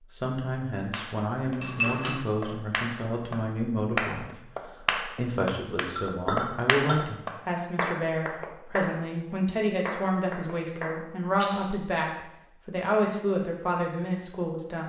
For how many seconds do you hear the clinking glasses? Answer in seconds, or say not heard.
2 s.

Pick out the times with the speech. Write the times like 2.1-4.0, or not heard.
0.1-14.8.